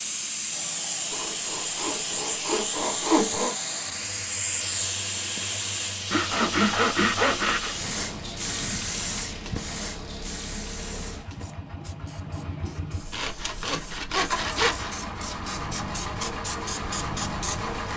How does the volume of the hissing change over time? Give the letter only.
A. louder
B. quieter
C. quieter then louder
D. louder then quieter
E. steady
C.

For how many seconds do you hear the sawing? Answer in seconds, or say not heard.
6 s.